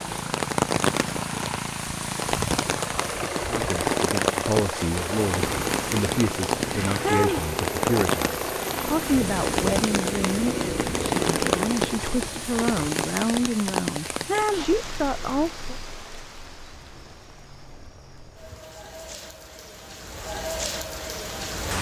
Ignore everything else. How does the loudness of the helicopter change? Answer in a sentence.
The volume of the helicopter goes down.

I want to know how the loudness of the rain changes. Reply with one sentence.
The volume of the rain goes down.